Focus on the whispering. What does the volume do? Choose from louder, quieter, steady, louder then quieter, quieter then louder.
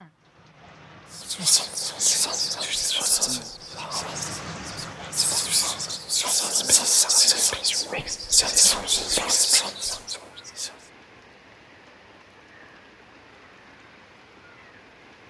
quieter then louder.